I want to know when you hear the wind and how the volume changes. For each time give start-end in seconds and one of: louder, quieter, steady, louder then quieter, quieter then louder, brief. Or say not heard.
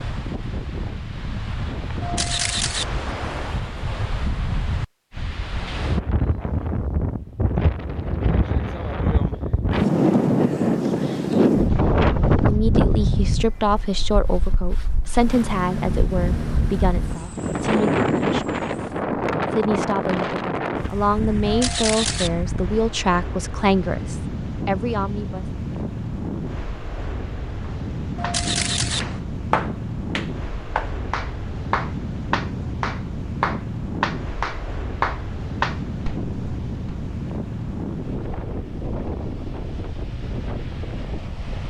0.0-41.6 louder then quieter.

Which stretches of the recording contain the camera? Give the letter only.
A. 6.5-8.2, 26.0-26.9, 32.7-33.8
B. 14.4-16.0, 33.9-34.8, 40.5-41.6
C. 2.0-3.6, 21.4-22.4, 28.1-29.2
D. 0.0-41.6
C.